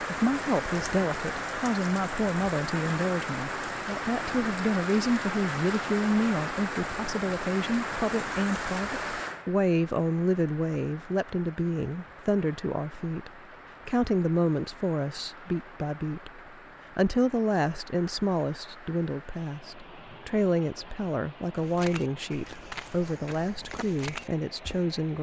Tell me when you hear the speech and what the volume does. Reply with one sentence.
The speech can be heard from 0.0 to 25.1 s, at a steady volume.